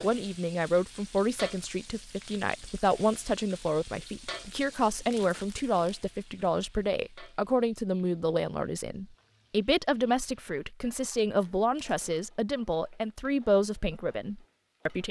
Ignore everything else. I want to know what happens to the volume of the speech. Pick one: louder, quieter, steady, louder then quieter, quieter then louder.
steady.